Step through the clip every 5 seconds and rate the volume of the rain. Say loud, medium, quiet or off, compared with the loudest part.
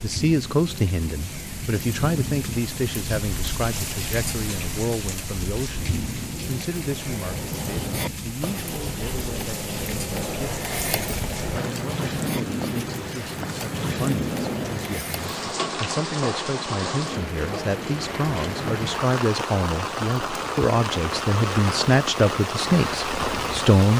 medium, medium, loud, loud, loud.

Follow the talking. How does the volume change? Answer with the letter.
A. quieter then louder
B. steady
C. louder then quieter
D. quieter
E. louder
A.